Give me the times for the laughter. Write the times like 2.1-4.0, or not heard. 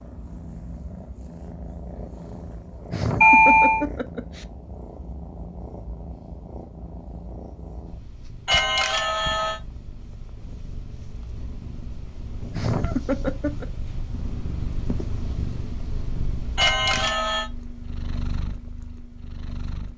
2.9-4.5, 12.5-13.7.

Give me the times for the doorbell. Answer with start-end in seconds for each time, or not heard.
3.2-3.9, 8.4-9.6, 16.6-17.4.